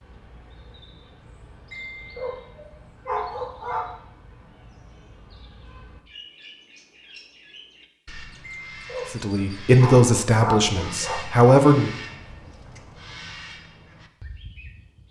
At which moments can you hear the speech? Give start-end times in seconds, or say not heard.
9.1-11.9.